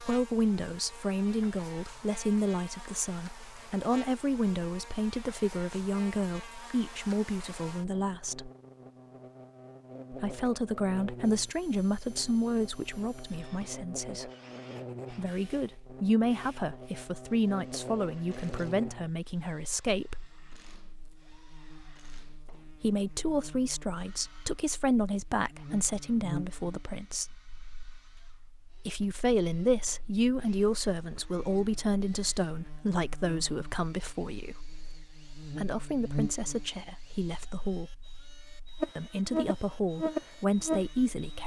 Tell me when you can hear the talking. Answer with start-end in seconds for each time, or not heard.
0.0-8.5, 10.1-14.3, 15.1-20.2, 22.8-27.2, 28.9-38.0, 39.0-41.4.